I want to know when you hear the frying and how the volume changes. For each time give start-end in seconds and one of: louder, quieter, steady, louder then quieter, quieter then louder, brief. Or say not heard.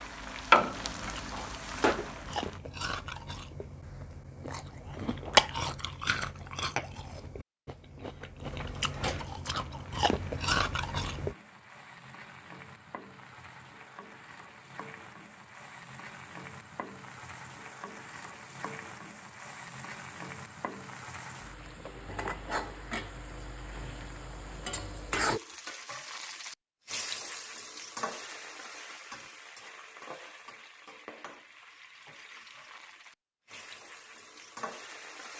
0.0-2.6 brief
9.6-35.3 louder then quieter.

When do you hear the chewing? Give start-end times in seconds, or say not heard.
0.9-11.3.